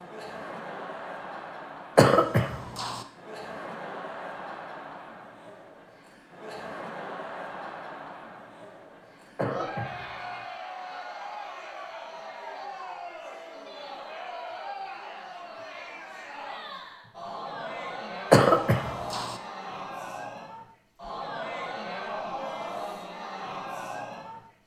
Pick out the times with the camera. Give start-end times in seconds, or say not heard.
not heard.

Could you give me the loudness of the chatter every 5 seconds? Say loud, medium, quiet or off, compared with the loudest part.
loud, medium, loud, loud, loud.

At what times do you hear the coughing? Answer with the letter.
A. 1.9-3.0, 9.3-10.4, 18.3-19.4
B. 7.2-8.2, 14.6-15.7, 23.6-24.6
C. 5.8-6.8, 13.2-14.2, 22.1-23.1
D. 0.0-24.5
A.